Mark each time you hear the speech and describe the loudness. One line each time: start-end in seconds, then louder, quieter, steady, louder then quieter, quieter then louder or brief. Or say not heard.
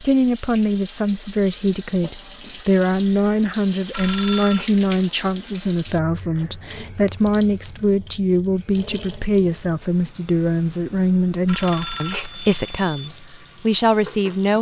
0.0-14.5 steady.